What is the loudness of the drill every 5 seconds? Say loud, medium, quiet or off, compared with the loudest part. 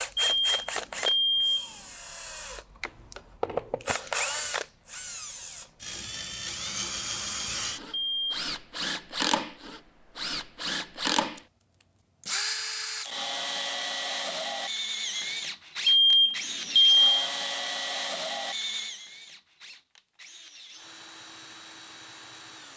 loud, loud, loud, loud, quiet.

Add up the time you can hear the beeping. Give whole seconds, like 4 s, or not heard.
3 s.